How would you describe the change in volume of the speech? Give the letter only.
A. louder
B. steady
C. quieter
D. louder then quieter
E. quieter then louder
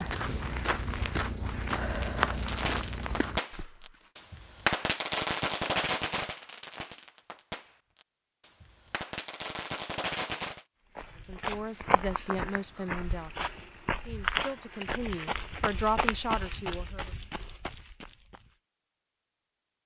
E.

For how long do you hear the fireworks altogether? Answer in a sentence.
The fireworks can be heard for 8 seconds in total.